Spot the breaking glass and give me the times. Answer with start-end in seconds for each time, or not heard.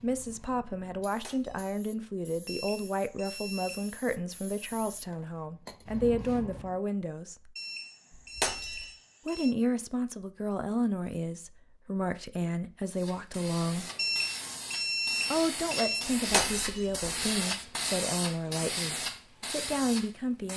1.2-1.8, 8.3-8.9, 16.3-17.1.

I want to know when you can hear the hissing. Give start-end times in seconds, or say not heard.
0.0-6.8, 12.9-20.5.